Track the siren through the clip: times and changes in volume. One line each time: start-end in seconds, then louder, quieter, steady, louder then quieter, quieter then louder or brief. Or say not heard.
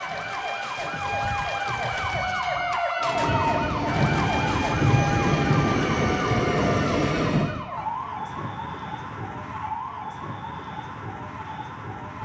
0.0-12.2 quieter.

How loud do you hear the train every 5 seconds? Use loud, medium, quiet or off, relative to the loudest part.
loud, loud, off.